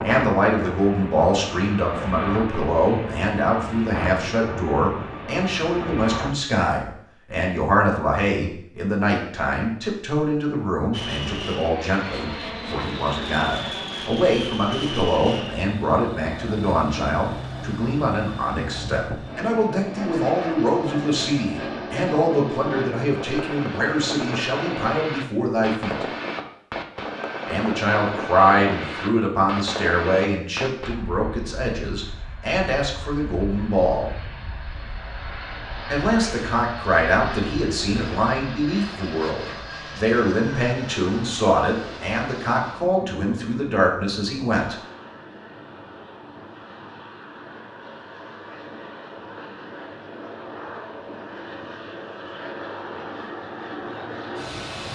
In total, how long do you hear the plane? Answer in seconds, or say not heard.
50 s.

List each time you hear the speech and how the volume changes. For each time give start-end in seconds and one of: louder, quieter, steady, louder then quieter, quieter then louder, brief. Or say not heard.
0.0-26.1 steady
27.4-34.1 quieter
35.9-44.8 steady.